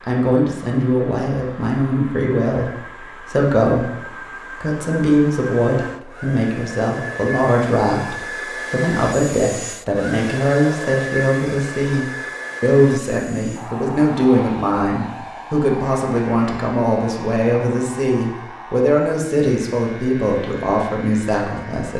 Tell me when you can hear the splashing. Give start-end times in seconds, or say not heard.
not heard.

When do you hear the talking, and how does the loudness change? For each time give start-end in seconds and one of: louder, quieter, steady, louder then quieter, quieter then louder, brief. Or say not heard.
0.0-21.9 steady.